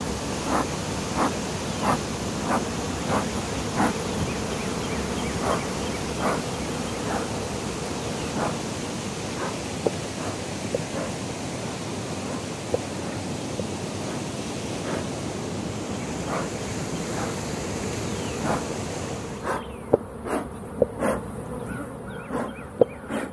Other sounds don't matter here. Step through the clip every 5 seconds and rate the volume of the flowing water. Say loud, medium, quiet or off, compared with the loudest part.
loud, loud, loud, loud, off.